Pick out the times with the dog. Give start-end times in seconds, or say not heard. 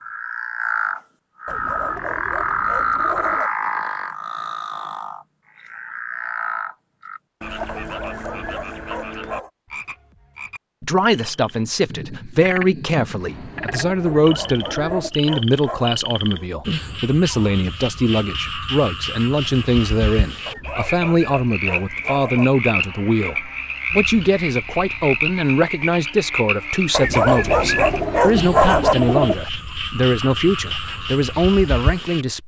1.4-3.5, 7.7-9.5, 14.1-16.0, 20.4-22.4, 26.9-28.9.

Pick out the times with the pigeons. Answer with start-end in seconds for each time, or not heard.
1.4-3.4, 13.2-15.1, 27.4-29.4.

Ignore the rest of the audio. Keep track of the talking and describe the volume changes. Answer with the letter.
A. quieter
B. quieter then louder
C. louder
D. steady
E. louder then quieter
D.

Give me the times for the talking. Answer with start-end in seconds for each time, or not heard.
10.8-32.4.